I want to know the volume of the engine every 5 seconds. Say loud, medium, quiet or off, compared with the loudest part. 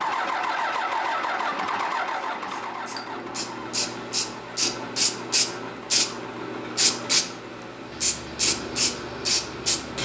loud, quiet.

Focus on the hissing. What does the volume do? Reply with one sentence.
The volume of the hissing goes up.